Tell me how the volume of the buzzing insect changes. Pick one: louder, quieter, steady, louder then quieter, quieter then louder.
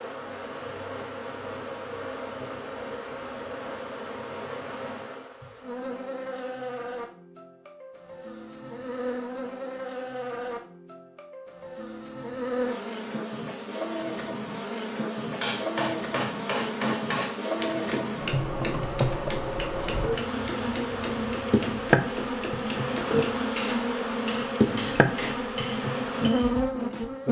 louder.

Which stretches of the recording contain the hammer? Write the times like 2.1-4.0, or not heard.
15.4-26.5.